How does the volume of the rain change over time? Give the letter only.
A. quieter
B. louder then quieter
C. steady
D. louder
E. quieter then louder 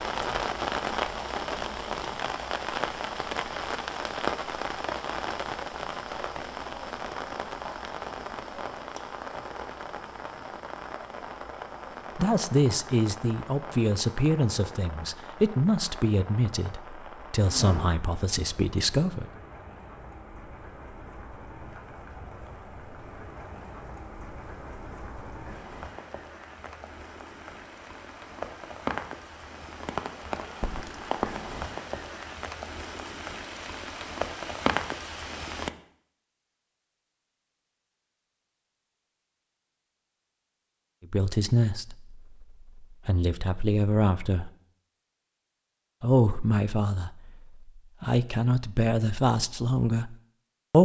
E.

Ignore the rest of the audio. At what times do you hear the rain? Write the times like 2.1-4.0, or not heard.
0.0-35.7.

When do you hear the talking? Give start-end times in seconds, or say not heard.
12.2-19.2, 41.1-44.5, 46.0-50.7.